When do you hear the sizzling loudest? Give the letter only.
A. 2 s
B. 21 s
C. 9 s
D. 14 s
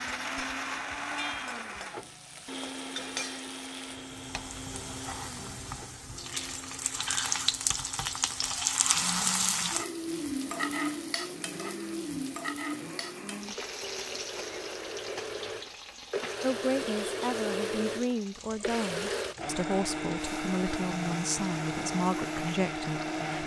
C.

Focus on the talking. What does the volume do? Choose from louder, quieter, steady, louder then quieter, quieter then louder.
steady.